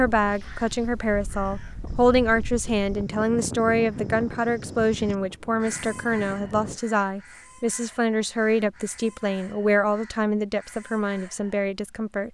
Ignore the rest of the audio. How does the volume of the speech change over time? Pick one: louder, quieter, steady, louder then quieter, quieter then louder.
steady.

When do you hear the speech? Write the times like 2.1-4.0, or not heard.
0.0-12.3.